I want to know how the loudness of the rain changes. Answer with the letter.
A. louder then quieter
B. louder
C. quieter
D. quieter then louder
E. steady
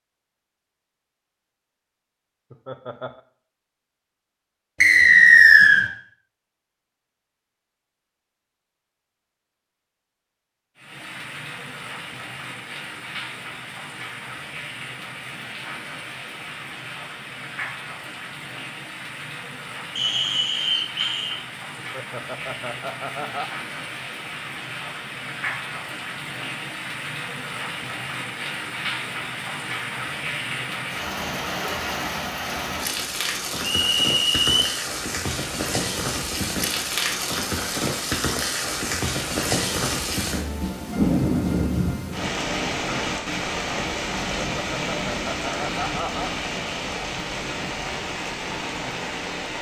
B.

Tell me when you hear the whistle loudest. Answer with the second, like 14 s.
5 s.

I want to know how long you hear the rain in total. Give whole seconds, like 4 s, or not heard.
39 s.